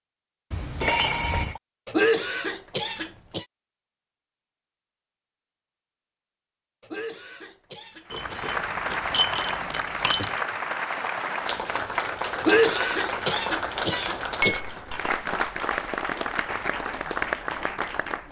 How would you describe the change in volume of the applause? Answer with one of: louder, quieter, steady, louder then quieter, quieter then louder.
steady.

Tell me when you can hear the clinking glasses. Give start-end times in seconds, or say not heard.
0.5-1.6, 8.1-10.4, 14.4-15.7.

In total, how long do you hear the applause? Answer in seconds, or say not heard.
10 s.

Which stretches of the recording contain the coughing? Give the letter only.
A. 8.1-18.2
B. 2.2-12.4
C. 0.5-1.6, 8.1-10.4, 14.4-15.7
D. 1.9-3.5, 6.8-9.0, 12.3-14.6
D.